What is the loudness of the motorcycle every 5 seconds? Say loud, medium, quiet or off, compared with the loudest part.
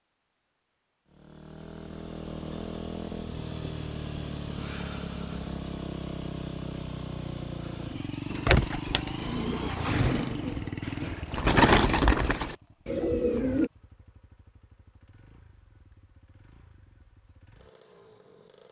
loud, loud, loud, quiet.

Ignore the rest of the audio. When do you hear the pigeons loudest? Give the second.
12 s.